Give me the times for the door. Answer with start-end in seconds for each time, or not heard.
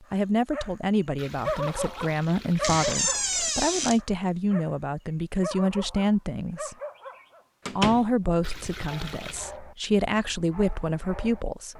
2.6-4.0, 7.7-8.1.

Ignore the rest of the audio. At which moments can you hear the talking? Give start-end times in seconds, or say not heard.
0.1-6.8, 7.8-11.7.